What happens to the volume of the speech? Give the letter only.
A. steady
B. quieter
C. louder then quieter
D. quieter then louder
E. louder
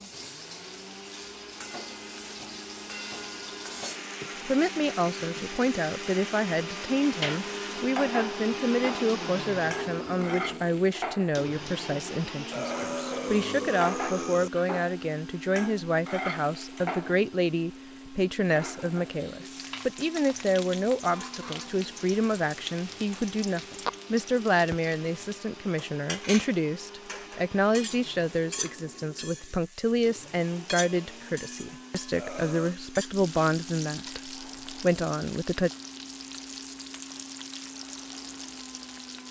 A.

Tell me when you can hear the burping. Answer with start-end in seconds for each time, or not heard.
12.5-14.5, 32.1-32.8.